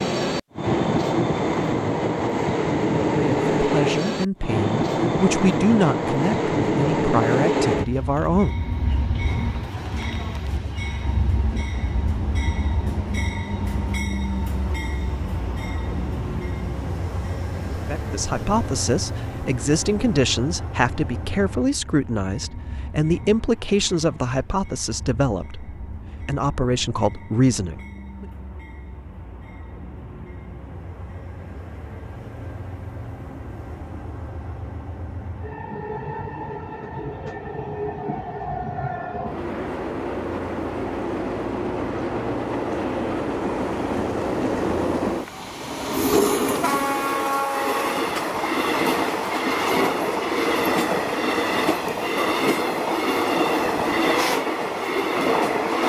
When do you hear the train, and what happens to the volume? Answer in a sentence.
The train can be heard from 0.0 to 55.8 s, getting quieter then louder.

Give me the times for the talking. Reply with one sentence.
You can hear the talking from 3.1 to 8.6 s and from 17.7 to 28.2 s.